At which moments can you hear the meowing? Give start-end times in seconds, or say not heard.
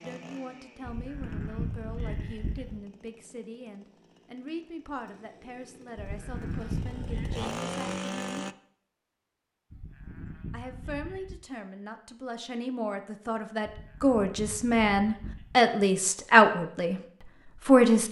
not heard.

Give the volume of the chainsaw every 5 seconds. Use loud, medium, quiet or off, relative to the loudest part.
quiet, loud, off, off.